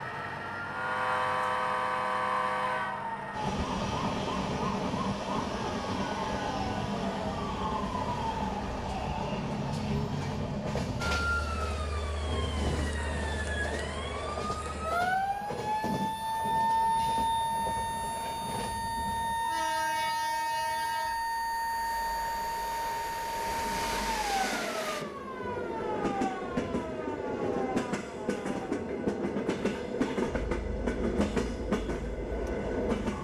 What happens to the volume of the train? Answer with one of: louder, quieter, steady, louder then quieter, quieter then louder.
quieter then louder.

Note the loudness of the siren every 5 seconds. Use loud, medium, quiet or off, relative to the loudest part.
medium, medium, medium, loud, loud, medium, quiet.